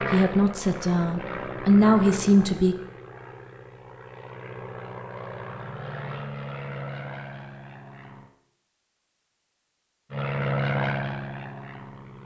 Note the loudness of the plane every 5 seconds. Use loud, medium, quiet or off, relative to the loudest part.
medium, medium, loud.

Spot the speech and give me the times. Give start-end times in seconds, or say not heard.
0.1-2.8.